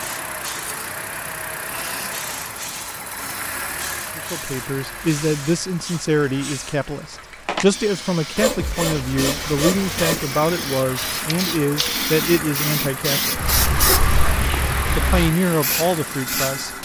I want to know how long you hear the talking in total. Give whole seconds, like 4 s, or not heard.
11 s.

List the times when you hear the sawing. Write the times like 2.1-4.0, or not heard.
8.3-10.3.